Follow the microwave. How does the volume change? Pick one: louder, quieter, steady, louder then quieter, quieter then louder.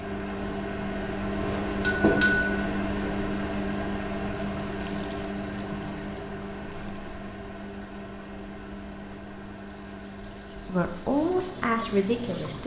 quieter.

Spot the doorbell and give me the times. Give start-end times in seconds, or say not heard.
1.4-2.6.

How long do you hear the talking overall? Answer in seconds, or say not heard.
2 s.